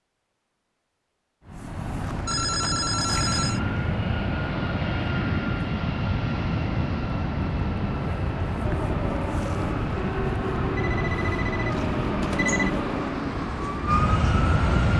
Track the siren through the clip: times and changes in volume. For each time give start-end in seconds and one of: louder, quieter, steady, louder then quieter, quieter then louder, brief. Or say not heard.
8.6-14.9 louder.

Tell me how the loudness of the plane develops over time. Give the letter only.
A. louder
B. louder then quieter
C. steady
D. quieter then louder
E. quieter
C.